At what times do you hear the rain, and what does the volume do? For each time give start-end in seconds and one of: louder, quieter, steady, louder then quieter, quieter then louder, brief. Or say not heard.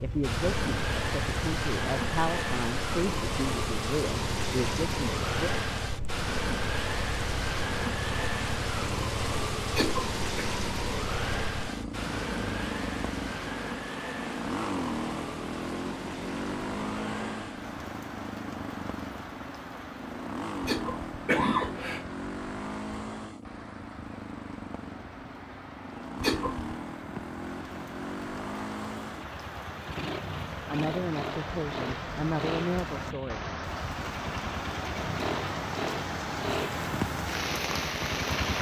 0.0-38.5 quieter then louder.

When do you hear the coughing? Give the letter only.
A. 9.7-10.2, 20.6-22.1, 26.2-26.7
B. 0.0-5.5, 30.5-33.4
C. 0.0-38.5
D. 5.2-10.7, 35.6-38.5
A.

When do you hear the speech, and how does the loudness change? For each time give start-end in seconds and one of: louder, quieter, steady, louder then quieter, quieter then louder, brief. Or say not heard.
0.0-5.5 steady
30.5-33.4 brief.